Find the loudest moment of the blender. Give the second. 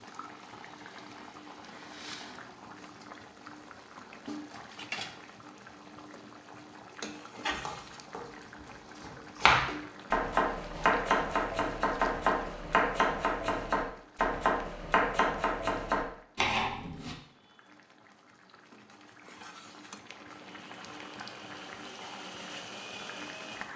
23 s.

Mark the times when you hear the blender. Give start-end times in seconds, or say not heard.
0.1-2.5, 20.3-23.7.